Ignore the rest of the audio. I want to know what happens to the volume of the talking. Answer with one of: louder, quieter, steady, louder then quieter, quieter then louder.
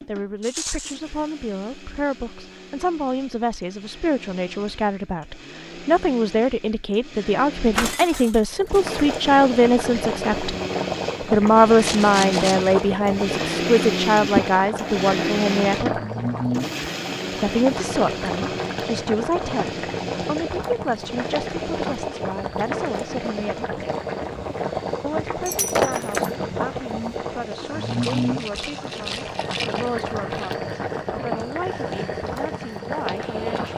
louder then quieter.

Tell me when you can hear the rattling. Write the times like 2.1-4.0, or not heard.
0.4-1.0, 11.8-12.7, 27.9-30.6.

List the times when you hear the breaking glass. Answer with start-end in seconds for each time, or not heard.
7.8-8.8, 25.4-26.3.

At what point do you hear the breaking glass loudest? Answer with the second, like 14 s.
26 s.